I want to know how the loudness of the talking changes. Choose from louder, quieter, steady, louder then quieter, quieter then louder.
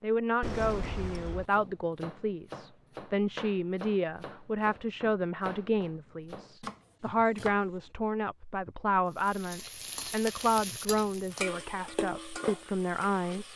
steady.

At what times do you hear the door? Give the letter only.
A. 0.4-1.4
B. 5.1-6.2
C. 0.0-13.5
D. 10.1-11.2
A.